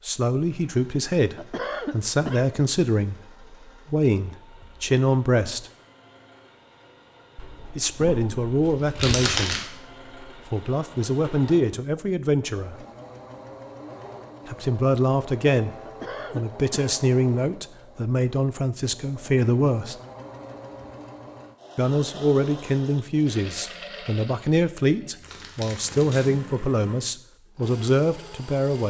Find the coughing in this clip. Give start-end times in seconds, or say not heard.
1.4-2.5, 15.8-16.9.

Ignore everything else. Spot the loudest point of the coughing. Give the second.
2 s.